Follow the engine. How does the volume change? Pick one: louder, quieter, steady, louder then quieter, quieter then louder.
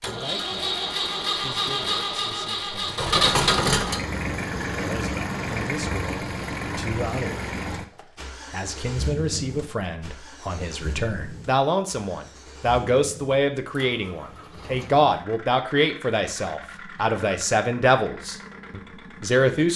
quieter.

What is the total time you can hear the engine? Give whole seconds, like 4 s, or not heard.
20 s.